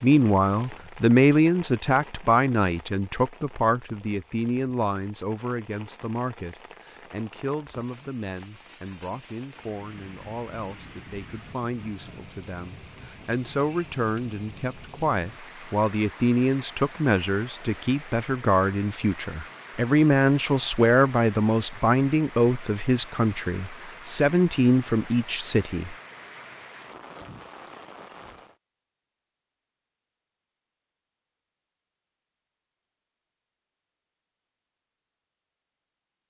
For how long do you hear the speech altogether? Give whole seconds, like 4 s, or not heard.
26 s.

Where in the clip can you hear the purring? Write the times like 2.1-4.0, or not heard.
not heard.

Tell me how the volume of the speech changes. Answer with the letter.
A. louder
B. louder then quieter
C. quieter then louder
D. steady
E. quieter
C.